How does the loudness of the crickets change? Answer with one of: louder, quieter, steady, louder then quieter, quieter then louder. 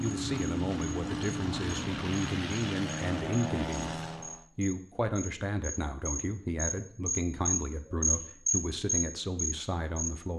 louder.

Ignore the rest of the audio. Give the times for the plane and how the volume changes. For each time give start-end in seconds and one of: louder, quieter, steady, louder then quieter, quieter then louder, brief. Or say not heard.
0.0-4.5 steady.